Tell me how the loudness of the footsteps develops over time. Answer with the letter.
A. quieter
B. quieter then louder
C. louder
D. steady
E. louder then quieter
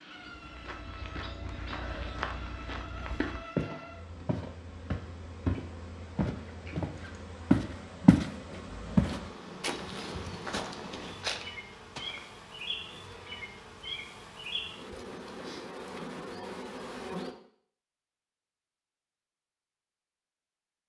E.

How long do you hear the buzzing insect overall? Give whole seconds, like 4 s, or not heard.
17 s.